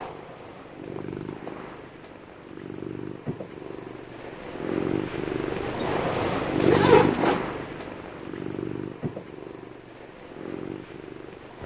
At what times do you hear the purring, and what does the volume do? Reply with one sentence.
The purring can be heard from 0.0 to 11.6 s, getting louder then quieter.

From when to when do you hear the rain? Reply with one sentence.
The rain can't be heard in this clip.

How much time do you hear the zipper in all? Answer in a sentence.
The zipper can be heard for 2 seconds in total.